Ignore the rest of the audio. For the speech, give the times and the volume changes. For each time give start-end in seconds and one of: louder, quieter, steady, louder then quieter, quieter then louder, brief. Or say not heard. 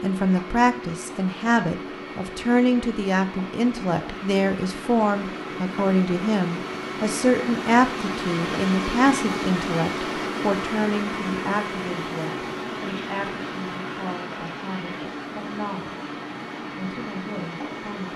0.0-16.1 quieter
16.8-18.1 brief.